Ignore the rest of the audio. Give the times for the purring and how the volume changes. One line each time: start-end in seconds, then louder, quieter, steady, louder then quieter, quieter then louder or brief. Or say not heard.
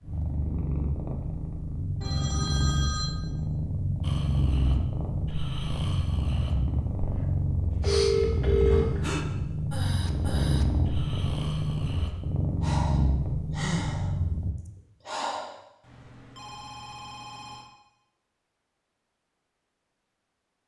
0.0-14.6 steady.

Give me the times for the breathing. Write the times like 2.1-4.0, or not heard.
4.0-15.6.